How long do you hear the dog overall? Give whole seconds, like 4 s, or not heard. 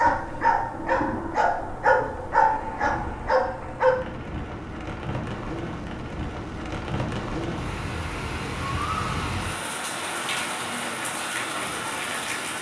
4 s.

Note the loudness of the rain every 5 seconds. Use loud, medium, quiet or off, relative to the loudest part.
medium, loud, loud.